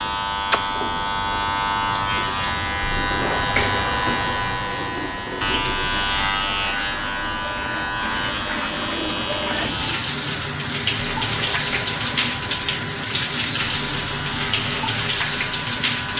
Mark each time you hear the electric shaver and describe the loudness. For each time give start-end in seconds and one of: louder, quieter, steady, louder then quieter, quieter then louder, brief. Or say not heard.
0.0-16.1 quieter.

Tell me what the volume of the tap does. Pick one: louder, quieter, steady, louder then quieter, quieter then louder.
louder.